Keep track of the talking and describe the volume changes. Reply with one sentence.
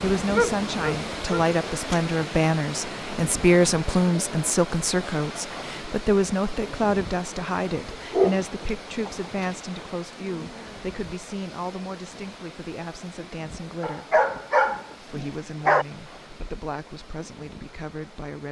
The loudness of the talking goes down.